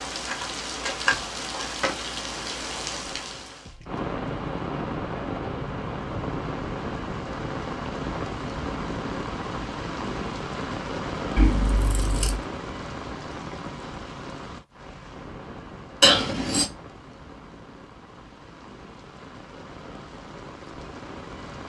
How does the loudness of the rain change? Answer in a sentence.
The loudness of the rain goes down.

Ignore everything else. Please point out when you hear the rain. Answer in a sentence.
The rain can be heard from 0.0 to 21.6 s.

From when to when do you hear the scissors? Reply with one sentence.
You can hear the scissors from 0.2 to 1.9 s, from 11.3 to 12.4 s and from 16.0 to 16.6 s.